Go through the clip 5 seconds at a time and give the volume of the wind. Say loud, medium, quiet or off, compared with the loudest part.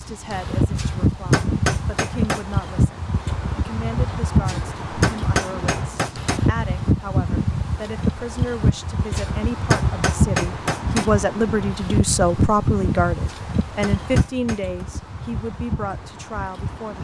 loud, loud, loud, medium.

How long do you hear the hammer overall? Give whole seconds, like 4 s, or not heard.
7 s.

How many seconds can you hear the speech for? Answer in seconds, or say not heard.
17 s.